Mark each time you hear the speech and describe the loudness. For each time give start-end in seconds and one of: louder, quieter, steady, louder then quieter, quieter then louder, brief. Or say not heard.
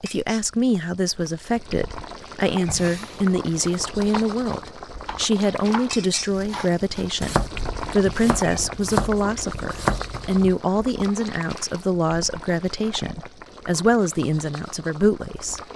0.0-15.6 steady.